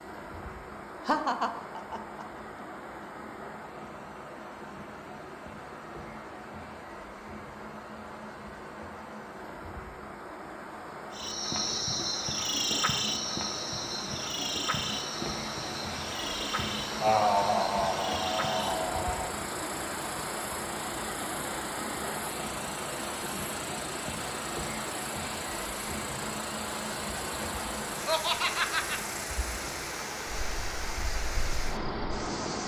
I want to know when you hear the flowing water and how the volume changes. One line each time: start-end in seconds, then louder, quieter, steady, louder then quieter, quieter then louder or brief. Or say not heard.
0.0-32.6 louder.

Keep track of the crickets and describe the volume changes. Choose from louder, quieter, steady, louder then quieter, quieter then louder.
quieter.